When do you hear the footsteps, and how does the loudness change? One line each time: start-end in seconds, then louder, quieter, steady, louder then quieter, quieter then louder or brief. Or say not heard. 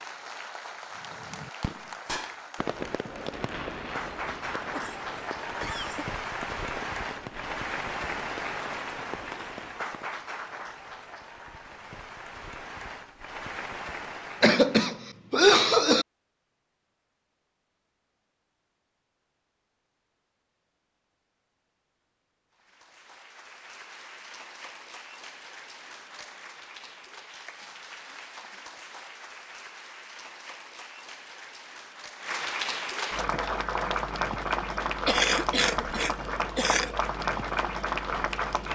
not heard.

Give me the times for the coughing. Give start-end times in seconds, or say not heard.
4.8-6.0, 14.4-16.1, 35.0-36.9.